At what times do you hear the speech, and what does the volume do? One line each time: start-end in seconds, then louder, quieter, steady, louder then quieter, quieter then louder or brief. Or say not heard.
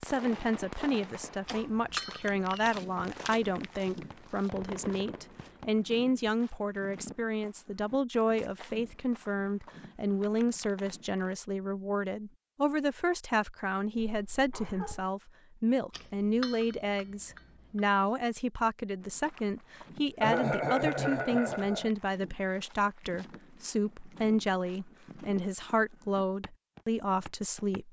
0.0-27.8 steady.